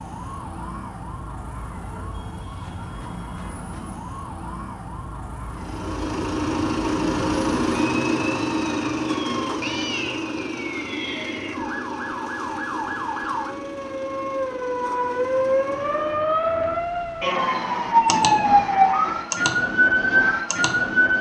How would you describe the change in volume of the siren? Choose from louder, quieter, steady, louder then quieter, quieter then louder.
louder.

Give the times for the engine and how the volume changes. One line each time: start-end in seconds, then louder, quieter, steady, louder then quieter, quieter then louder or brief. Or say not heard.
5.5-16.1 quieter.